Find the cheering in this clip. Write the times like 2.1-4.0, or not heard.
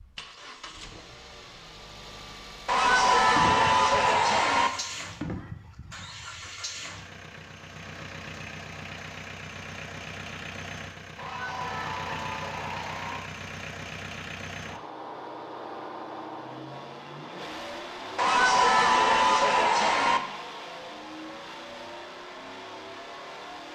2.6-4.7, 11.2-13.2, 18.1-20.2.